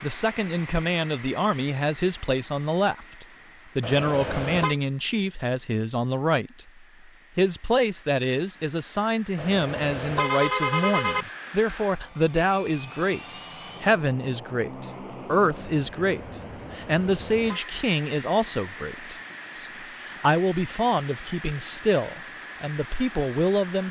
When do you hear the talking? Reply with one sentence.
You can hear the talking from 0.0 to 6.7 s and from 7.3 to 23.8 s.